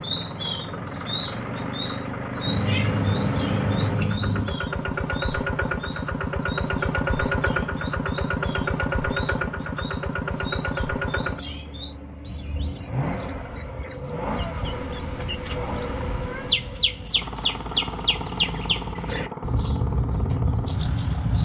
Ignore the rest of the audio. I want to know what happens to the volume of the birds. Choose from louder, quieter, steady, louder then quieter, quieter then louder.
quieter then louder.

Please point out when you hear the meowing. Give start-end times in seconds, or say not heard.
2.5-4.5, 14.6-16.6.